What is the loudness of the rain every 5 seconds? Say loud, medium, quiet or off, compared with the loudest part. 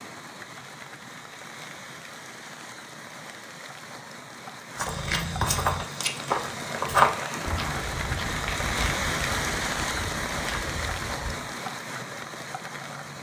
medium, loud, loud.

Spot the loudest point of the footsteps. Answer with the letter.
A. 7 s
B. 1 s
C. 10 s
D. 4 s
A.